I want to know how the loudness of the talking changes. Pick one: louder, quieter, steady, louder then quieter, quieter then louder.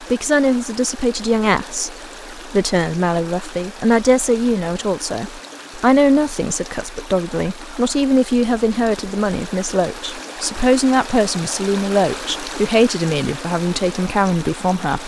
steady.